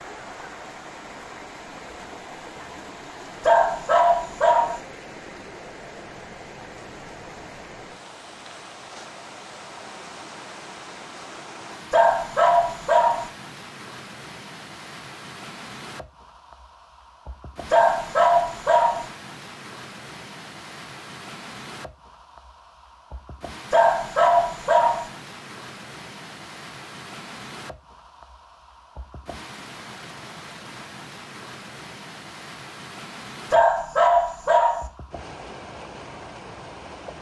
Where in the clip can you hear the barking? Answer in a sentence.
The barking can be heard from 3.4 to 4.8 s, from 11.9 to 13.3 s, from 17.7 to 19.1 s, from 23.7 to 25.1 s and from 33.5 to 34.9 s.